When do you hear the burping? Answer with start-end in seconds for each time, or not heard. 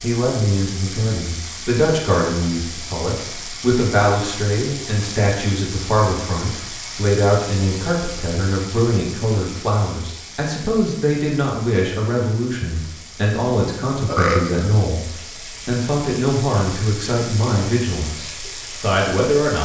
14.1-14.7.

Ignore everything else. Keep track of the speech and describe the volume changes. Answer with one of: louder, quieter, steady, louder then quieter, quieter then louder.
steady.